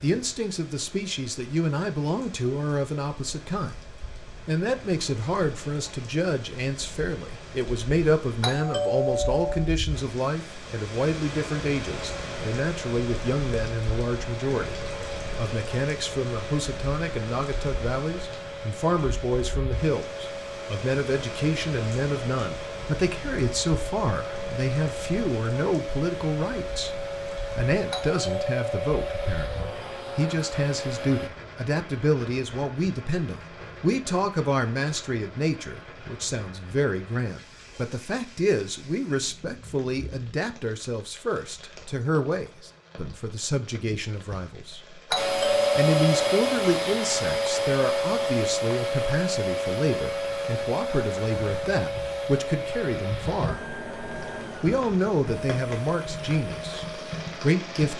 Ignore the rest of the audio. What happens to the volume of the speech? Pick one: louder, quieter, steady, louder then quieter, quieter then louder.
steady.